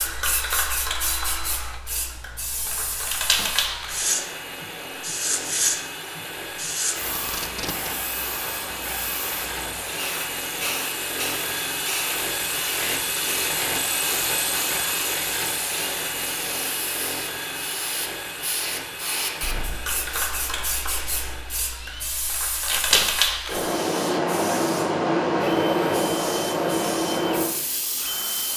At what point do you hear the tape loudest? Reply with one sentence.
The volume of the tape peaks at 23 seconds.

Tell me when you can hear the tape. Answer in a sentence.
The tape can be heard from 7.2 to 7.9 s and from 22.6 to 23.1 s.